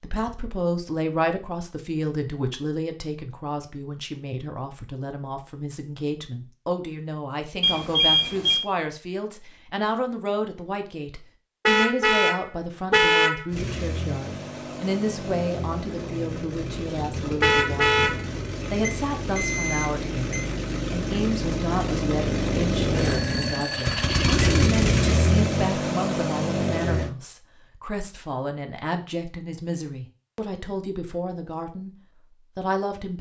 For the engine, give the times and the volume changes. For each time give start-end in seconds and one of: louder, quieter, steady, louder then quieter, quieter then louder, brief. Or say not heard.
13.5-27.1 louder.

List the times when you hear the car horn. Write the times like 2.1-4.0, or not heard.
11.7-13.4, 17.4-18.2.